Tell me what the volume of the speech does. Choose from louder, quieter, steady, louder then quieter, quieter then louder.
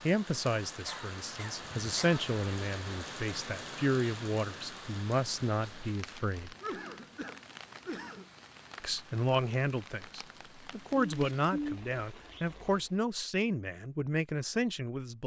steady.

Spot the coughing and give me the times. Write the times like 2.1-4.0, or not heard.
0.8-2.2, 6.6-8.2, 10.9-11.8.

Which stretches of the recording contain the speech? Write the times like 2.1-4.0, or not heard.
0.0-6.5, 8.8-15.2.